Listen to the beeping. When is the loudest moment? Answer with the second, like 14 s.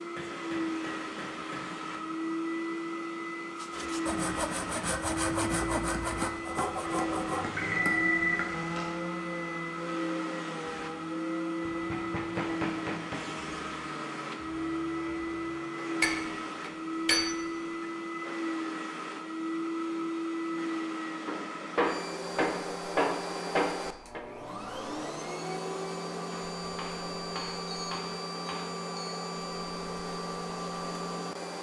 8 s.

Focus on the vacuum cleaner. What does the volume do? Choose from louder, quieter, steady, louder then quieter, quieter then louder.
steady.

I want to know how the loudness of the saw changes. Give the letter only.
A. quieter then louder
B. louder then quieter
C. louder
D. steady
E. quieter
E.